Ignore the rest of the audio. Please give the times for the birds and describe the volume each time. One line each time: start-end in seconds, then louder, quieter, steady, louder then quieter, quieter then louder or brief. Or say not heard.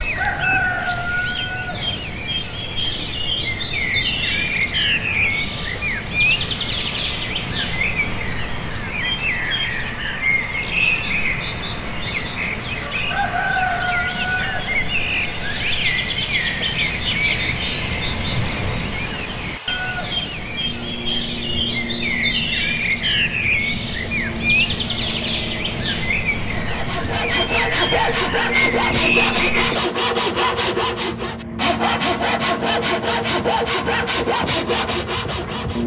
0.0-29.8 steady.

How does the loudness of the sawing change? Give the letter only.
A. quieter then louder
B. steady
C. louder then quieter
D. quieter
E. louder
B.